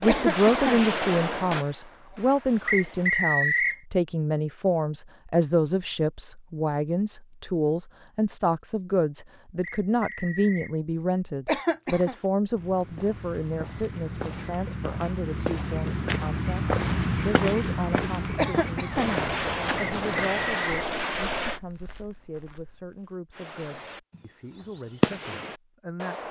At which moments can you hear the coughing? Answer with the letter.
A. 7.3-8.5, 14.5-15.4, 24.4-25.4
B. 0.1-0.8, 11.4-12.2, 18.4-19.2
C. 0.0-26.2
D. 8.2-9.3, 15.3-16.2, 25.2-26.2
B.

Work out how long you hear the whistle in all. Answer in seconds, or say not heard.
3 s.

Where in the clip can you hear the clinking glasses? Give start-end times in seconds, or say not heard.
not heard.